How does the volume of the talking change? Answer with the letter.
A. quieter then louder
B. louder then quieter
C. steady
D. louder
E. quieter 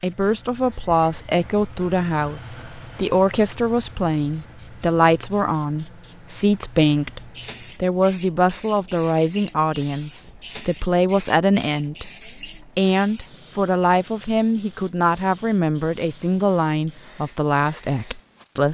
C.